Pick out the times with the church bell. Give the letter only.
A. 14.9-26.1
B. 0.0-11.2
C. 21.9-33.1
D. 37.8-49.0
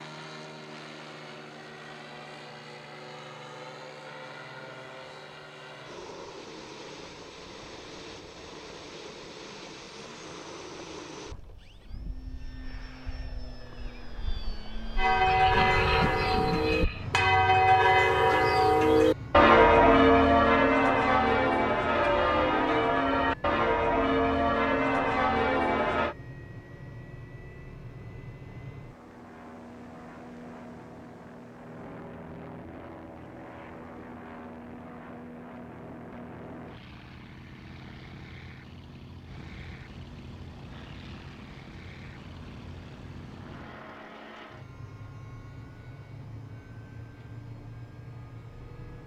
A.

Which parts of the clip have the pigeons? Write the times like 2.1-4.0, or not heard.
not heard.